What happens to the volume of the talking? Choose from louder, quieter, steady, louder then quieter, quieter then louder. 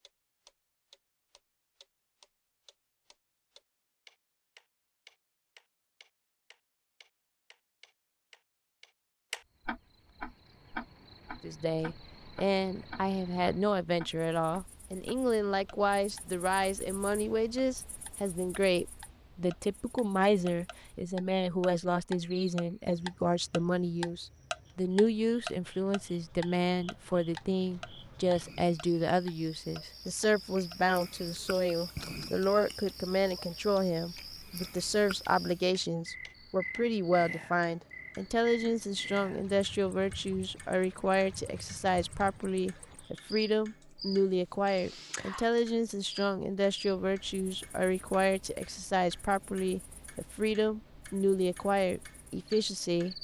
steady.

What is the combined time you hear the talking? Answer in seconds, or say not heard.
42 s.